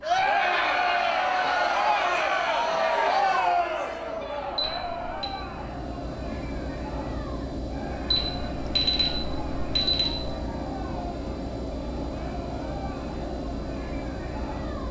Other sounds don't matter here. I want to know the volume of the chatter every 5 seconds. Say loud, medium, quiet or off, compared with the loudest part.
loud, quiet, quiet.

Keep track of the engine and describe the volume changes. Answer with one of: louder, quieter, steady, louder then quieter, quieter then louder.
louder.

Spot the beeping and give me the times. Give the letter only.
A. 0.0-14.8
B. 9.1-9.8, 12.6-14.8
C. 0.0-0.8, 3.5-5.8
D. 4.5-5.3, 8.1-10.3
D.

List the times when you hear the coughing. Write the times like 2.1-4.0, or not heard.
not heard.